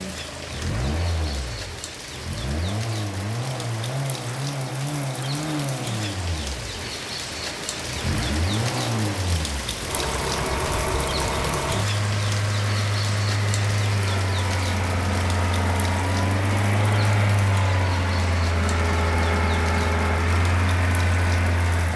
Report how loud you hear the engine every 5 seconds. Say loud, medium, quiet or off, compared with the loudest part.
medium, medium, loud, loud, loud.